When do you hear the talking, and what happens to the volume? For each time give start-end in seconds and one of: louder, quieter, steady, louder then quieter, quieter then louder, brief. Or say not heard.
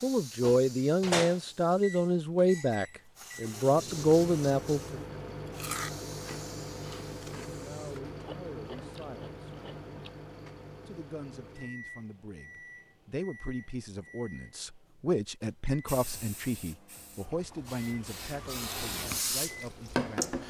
0.0-5.0 steady
7.5-9.3 brief
10.8-20.4 louder then quieter.